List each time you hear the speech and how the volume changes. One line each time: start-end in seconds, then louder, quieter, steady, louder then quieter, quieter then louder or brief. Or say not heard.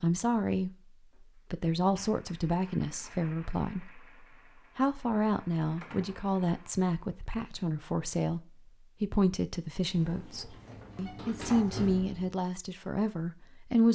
0.0-13.8 steady.